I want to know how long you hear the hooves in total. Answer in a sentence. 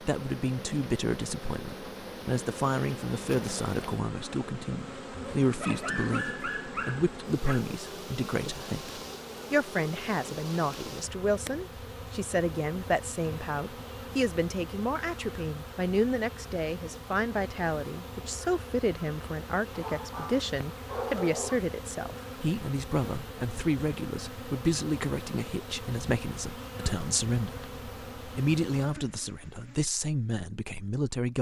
The hooves can't be heard in this clip.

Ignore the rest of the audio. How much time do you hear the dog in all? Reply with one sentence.
You can hear the dog for 4 seconds altogether.